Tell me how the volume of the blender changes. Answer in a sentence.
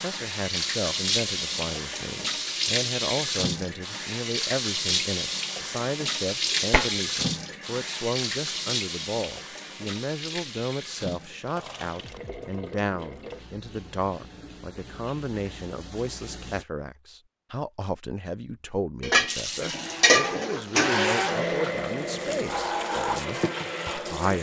The loudness of the blender goes up, then down.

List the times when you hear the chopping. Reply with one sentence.
You can't hear the chopping here.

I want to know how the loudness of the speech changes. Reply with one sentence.
The loudness of the speech stays about the same.